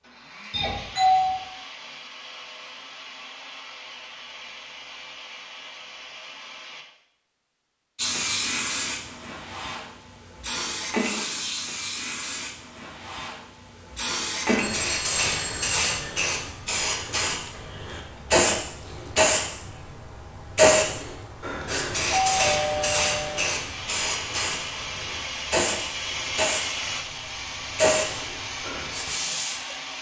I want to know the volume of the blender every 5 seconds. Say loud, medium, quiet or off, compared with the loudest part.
medium, medium, off, off, loud, loud.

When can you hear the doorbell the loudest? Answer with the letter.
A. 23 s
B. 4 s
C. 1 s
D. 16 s
C.